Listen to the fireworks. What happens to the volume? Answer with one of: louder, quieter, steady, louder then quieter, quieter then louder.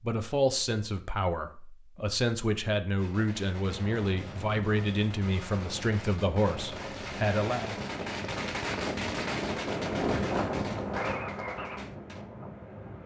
louder then quieter.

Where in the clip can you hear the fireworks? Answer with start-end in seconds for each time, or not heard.
3.0-12.2.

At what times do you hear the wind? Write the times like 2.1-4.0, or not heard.
3.6-13.0.